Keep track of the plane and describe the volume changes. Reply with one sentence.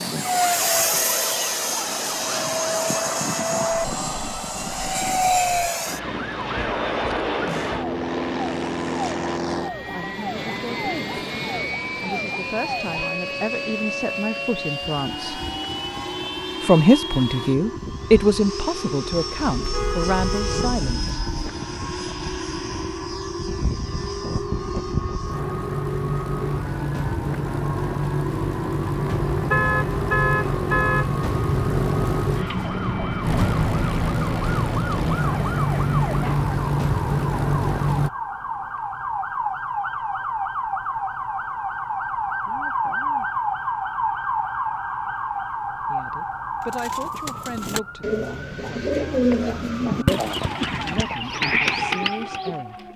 The volume of the plane goes down, then up.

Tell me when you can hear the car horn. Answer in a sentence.
You can hear the car horn from 19.6 to 21.4 s and from 29.5 to 31.1 s.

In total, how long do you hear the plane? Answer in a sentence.
The plane can be heard for 38 seconds in total.